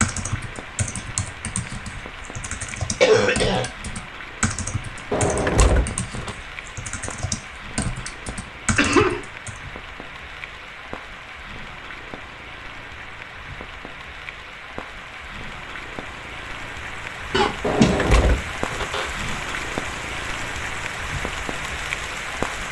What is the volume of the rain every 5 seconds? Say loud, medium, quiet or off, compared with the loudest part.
medium, medium, medium, loud, loud.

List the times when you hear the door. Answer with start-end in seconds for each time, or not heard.
5.1-6.3, 17.6-19.1.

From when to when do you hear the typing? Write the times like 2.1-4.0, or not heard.
0.0-9.6.